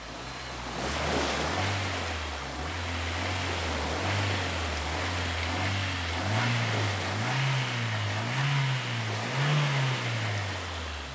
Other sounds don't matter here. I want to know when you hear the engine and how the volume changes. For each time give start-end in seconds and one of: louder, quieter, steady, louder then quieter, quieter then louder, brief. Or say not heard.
0.0-11.1 louder.